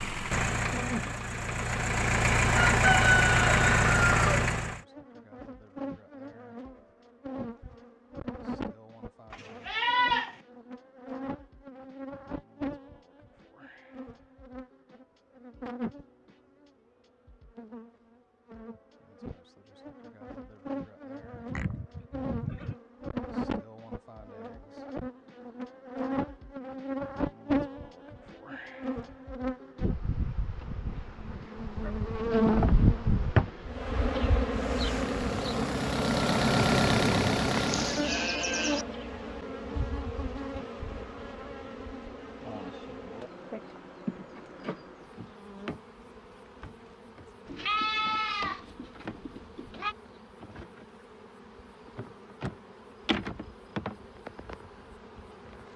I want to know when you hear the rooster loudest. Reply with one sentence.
The volume of the rooster peaks at 3 seconds.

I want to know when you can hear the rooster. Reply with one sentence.
You can hear the rooster from 2.5 to 4.3 s.